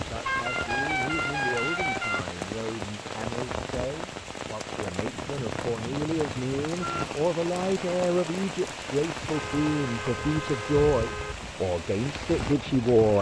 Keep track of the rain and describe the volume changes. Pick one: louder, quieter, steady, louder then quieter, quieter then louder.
steady.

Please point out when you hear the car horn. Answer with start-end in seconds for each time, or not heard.
0.2-2.2, 5.1-7.0, 9.3-11.3.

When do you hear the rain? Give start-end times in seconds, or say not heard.
0.0-13.1.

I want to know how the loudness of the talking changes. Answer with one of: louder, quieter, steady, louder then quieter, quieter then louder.
louder.